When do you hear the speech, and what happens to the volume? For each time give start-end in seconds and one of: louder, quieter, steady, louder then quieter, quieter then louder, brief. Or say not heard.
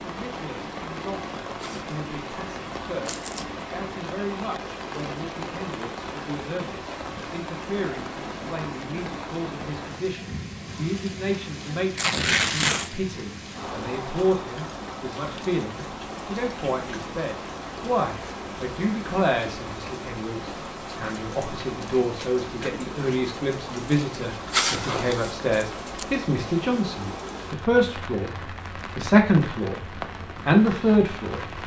0.0-31.4 louder.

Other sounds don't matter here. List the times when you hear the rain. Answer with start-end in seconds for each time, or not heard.
0.0-31.6.